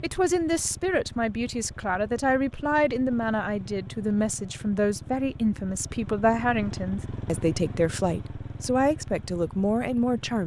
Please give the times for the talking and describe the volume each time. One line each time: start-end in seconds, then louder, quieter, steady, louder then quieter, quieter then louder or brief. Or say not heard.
0.0-10.4 steady.